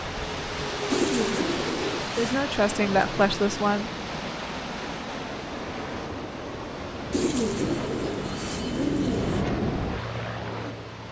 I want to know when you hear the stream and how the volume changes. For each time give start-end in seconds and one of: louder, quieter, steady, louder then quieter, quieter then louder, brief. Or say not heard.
0.0-11.0 quieter.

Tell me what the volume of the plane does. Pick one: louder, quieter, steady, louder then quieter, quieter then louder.
louder.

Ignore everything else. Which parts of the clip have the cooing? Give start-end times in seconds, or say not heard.
0.9-2.4, 7.1-9.4.